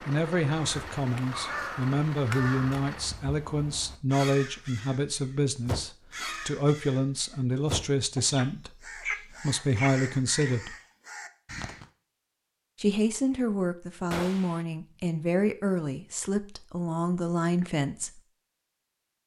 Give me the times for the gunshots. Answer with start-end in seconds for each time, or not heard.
14.1-14.7.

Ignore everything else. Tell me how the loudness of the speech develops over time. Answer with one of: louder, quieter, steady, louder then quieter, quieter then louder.
steady.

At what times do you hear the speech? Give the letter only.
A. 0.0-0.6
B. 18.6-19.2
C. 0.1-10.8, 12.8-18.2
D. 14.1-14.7
C.